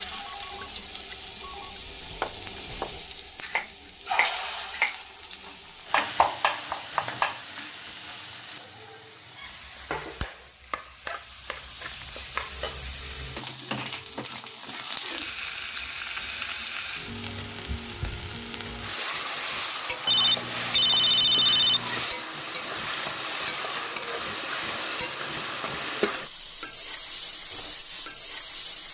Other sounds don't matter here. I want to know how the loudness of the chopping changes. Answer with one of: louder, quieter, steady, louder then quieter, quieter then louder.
louder.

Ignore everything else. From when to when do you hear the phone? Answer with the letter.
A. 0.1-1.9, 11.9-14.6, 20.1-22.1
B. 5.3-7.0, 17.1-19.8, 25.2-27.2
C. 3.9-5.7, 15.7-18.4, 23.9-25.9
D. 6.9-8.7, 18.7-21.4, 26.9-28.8
A.